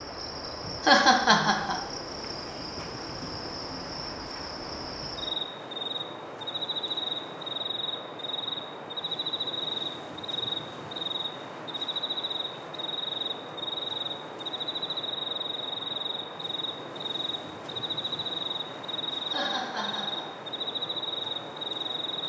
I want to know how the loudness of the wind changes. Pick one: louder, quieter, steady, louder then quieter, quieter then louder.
steady.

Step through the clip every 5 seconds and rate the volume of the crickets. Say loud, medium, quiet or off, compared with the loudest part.
medium, loud, loud, loud, loud.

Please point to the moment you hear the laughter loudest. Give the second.
1 s.